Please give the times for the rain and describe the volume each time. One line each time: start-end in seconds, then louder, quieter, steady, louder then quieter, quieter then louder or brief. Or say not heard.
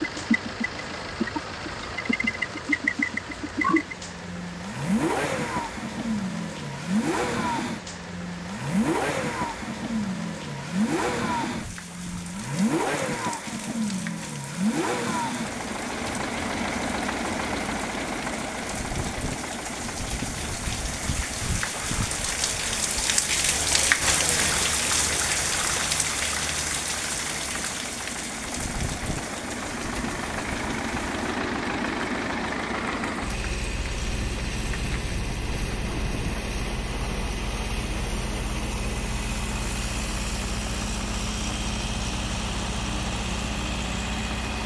0.0-44.6 louder then quieter.